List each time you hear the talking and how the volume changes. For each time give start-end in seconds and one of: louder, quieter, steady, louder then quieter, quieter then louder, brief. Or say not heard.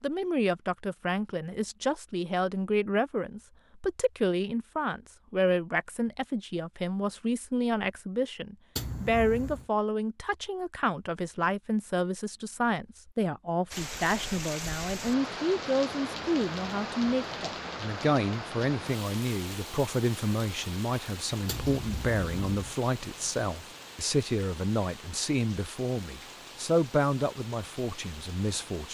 0.0-28.8 steady.